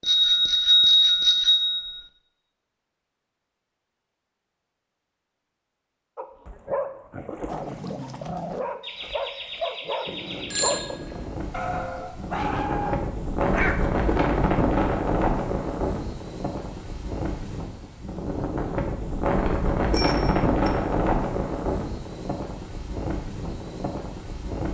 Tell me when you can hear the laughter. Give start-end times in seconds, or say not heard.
8.8-10.8.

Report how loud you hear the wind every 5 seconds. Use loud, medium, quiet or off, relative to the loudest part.
off, off, loud, loud, loud.